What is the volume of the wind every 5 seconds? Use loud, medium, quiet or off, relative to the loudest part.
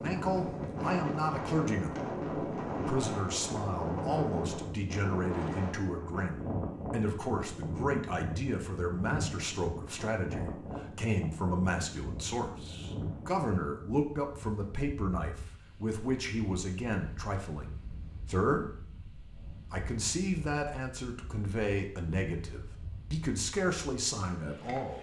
loud, loud, medium, quiet, quiet.